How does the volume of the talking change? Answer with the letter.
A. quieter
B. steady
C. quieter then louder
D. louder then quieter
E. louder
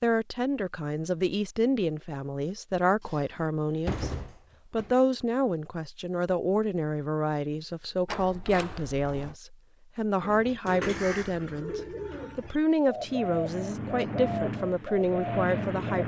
B.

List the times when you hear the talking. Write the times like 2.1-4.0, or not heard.
0.0-16.0.